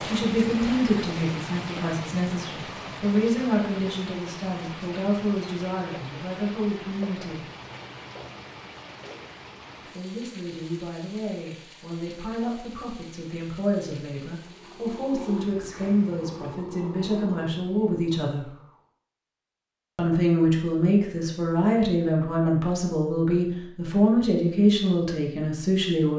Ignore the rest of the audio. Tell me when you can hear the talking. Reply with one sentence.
You can hear the talking from 0.1 to 7.5 s, from 9.9 to 18.5 s and from 19.9 to 26.1 s.